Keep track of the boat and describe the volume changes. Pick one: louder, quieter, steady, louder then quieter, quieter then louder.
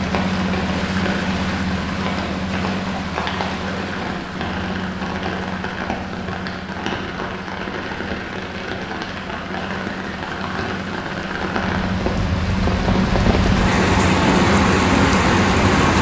quieter then louder.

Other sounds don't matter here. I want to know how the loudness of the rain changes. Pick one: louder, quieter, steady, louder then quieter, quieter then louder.
louder.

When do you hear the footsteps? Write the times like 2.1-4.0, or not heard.
not heard.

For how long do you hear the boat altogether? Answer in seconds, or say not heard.
16 s.